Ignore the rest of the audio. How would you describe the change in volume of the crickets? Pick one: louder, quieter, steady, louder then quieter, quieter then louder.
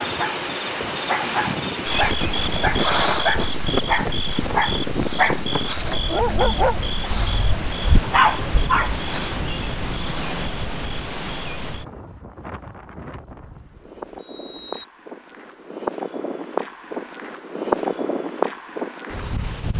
quieter then louder.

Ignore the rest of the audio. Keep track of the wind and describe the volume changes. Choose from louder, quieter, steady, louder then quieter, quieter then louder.
quieter then louder.